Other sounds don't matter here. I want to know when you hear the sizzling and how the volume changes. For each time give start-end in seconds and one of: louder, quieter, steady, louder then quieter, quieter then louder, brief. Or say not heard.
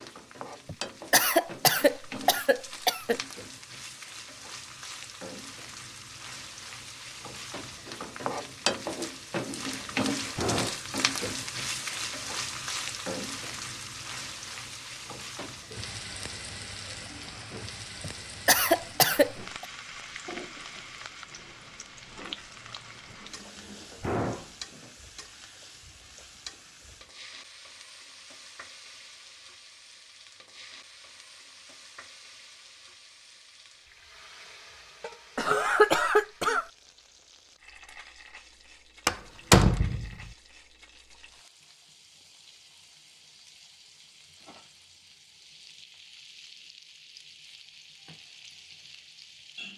0.0-49.7 quieter.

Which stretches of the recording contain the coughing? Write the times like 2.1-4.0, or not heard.
0.7-3.2, 18.0-19.6, 35.4-36.6.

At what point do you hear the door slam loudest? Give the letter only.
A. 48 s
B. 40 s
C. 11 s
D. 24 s
B.